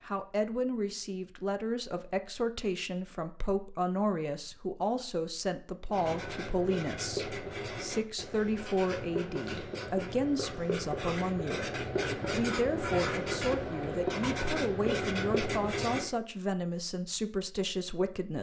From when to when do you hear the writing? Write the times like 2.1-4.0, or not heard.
5.8-16.1.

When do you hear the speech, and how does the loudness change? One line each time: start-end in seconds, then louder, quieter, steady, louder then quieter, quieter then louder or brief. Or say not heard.
0.1-18.3 steady.